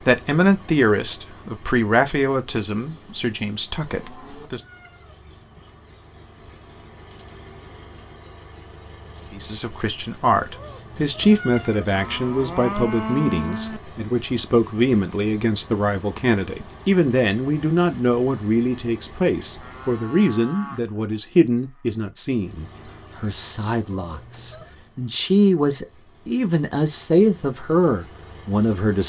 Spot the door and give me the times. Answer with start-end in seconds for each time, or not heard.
not heard.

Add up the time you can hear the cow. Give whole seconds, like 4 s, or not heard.
6 s.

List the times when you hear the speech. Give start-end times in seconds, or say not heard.
0.0-4.6, 9.3-29.0.